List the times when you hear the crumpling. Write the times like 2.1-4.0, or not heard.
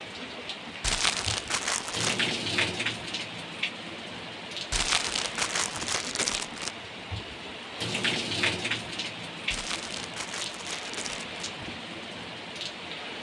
0.8-2.2, 4.7-6.8, 9.5-11.4.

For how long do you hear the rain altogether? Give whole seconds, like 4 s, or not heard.
13 s.